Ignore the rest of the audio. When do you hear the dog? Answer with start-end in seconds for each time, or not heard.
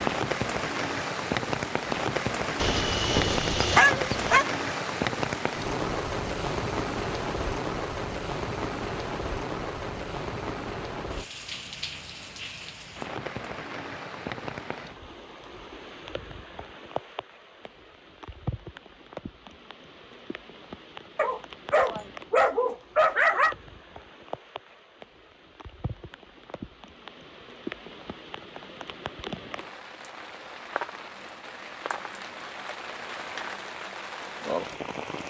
2.6-4.5, 21.1-23.6.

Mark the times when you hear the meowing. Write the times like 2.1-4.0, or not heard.
not heard.